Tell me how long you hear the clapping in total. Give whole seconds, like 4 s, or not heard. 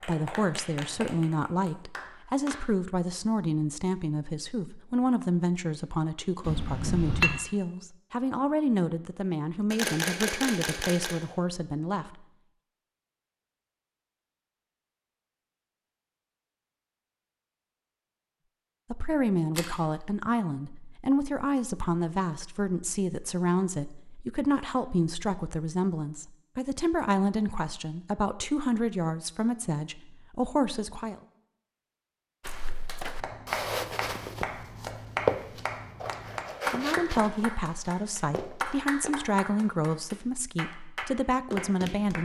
12 s.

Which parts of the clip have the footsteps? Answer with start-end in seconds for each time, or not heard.
32.5-39.2.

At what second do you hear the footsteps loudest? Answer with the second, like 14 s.
35 s.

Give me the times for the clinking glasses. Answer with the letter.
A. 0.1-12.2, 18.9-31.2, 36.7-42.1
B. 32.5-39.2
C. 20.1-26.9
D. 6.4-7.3
D.